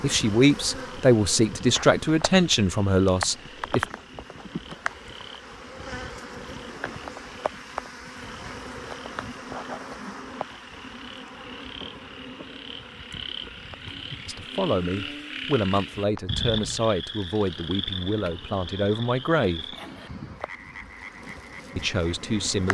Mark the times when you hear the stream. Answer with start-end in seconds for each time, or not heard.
not heard.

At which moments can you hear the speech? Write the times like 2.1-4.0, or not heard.
0.0-3.9, 14.2-19.8, 21.8-22.6.